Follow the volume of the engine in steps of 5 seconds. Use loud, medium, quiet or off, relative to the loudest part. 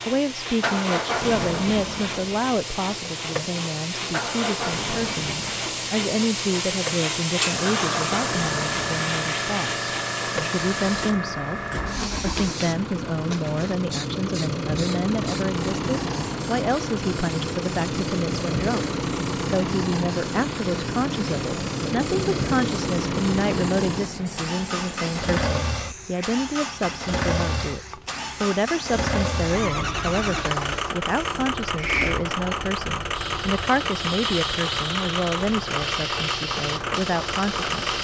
loud, medium, loud, loud, loud, loud, loud, loud.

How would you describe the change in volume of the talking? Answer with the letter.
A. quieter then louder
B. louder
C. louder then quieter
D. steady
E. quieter
D.